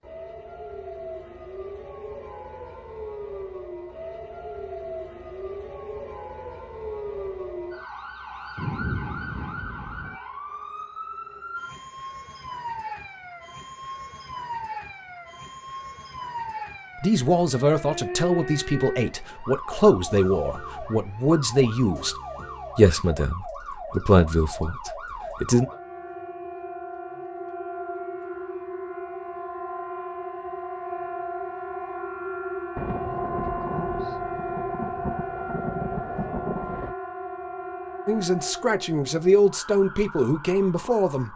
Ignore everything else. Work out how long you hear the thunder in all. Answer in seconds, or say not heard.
6 s.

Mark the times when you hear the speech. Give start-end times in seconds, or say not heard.
17.0-22.1, 22.8-25.6, 38.0-41.3.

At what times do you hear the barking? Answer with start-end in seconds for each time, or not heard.
not heard.